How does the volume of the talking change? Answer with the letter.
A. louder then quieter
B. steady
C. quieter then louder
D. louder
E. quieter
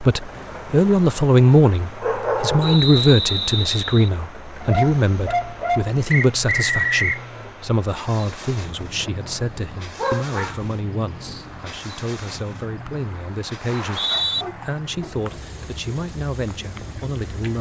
E.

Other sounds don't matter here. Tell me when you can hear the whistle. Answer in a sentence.
The whistle can be heard from 2.6 to 4.1 s, from 6.1 to 7.2 s and from 13.7 to 14.4 s.